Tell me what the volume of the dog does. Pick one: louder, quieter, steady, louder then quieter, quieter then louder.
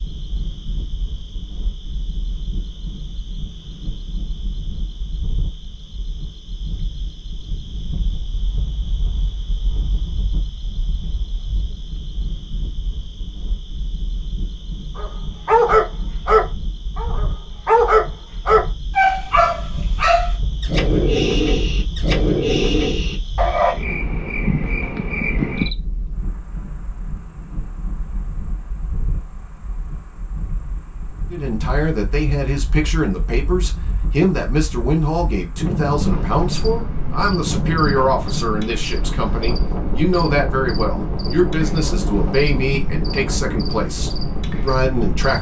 quieter.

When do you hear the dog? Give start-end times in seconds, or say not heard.
14.9-23.8.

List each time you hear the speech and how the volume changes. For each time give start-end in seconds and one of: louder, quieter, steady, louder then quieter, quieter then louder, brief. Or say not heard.
31.3-45.3 steady.